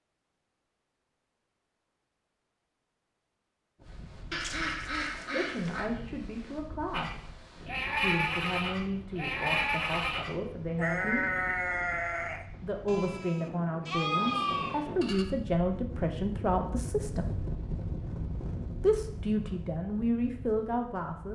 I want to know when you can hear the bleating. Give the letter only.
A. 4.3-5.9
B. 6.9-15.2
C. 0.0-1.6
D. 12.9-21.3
B.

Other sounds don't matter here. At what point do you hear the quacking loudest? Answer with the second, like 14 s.
5 s.